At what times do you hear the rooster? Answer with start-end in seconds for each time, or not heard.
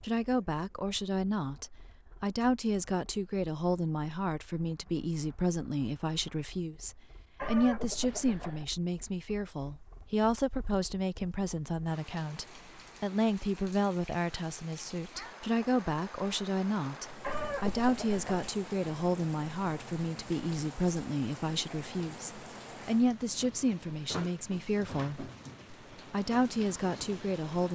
7.3-8.7, 17.2-18.2.